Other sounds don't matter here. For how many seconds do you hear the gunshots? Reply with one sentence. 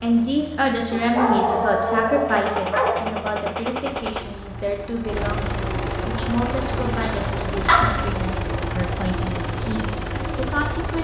You can hear the gunshots for 2 seconds altogether.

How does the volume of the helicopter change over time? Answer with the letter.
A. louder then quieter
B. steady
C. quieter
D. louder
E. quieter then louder
D.